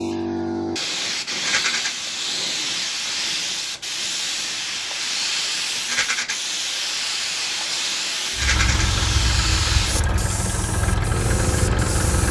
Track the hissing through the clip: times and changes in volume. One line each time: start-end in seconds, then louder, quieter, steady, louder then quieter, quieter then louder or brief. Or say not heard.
0.0-12.2 steady.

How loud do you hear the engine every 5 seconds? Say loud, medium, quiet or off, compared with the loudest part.
off, loud, loud.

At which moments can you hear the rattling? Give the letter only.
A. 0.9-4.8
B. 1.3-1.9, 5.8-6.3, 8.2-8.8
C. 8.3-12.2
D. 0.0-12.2
B.